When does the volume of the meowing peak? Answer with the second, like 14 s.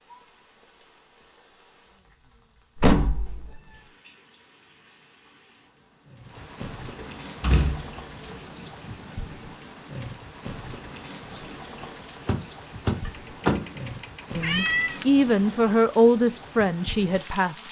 15 s.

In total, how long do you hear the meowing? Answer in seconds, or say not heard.
4 s.